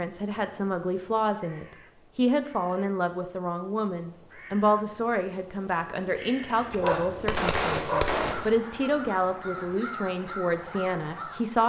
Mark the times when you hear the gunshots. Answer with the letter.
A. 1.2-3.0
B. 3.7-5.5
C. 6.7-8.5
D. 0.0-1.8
C.